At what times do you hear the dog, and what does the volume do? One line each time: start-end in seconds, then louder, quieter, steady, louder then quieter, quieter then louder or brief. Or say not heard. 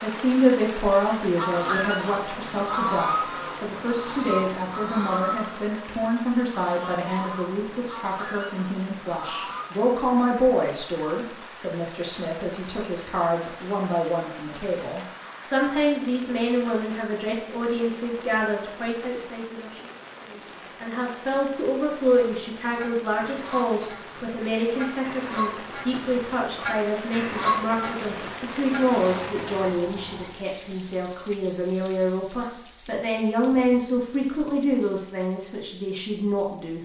not heard.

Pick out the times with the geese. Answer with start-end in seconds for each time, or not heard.
1.4-9.7, 21.9-30.3.